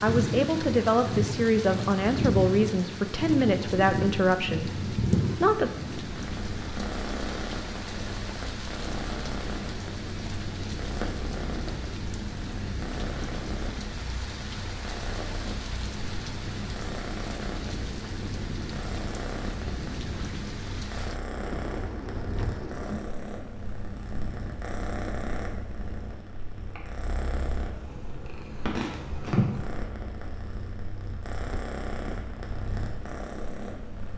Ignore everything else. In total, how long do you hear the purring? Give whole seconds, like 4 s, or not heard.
34 s.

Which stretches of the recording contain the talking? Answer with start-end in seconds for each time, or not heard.
0.0-5.7.